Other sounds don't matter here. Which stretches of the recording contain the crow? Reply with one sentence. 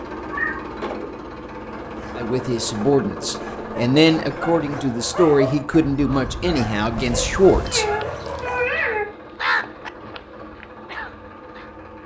You can hear the crow from 5.8 to 11.7 s.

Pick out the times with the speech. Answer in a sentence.
You can hear the speech from 2.1 to 7.8 s.